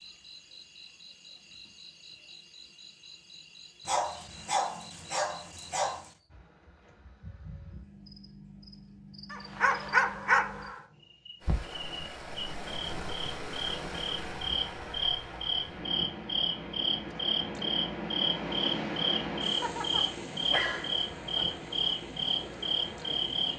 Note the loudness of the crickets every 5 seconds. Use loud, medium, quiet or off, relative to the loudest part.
quiet, quiet, medium, loud, loud.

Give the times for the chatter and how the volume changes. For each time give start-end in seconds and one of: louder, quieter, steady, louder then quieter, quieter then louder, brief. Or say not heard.
not heard.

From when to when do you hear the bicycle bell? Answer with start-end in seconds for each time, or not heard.
not heard.